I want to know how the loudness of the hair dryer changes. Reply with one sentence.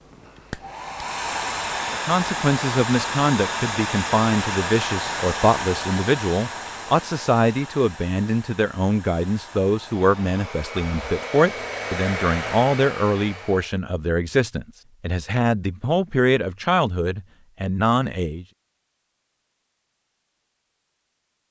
The loudness of the hair dryer goes down, then up.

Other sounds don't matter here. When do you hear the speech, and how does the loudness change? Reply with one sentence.
The speech can be heard from 1.9 to 18.4 s, at a steady volume.